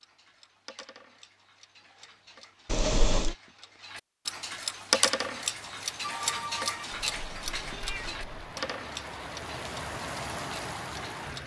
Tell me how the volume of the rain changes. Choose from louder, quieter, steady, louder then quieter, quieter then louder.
louder.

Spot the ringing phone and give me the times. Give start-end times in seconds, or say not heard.
6.0-7.0.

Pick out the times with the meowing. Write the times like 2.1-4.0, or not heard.
2.6-3.4, 6.9-8.6.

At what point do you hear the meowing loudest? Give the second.
3 s.